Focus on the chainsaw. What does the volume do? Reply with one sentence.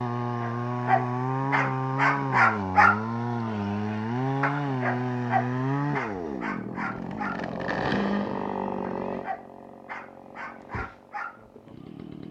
The loudness of the chainsaw goes down.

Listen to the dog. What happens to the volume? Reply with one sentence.
The loudness of the dog goes down.